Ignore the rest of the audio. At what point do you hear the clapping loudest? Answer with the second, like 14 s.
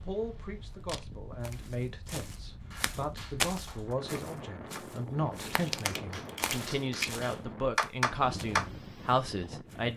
8 s.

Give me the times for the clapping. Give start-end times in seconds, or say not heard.
2.6-8.7.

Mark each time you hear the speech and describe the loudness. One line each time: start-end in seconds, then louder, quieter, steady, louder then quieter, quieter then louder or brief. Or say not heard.
0.0-9.9 louder.